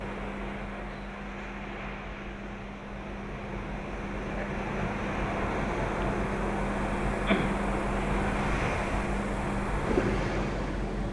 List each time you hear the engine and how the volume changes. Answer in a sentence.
You can hear the engine from 0.0 to 11.0 s, getting louder.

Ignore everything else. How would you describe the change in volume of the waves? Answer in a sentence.
The volume of the waves goes up.